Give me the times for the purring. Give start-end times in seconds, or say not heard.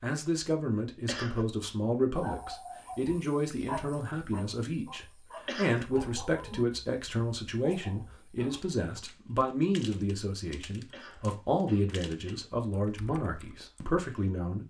not heard.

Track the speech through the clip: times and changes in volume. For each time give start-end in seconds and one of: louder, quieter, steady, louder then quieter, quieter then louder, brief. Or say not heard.
0.0-14.6 steady.